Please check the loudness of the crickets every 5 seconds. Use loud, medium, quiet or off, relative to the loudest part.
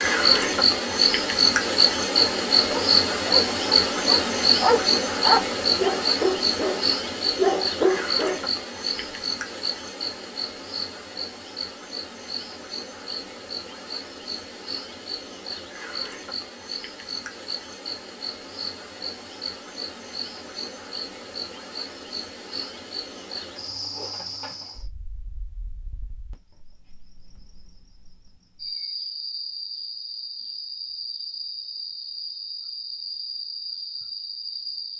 loud, medium, quiet, quiet, quiet, quiet, quiet.